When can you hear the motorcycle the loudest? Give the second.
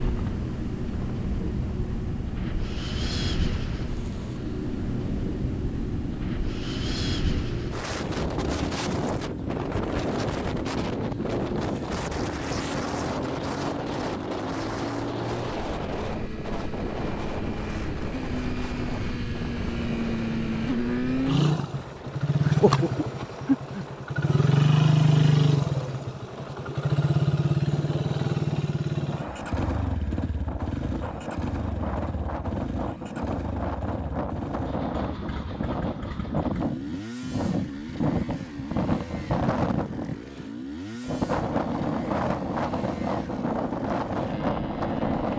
25 s.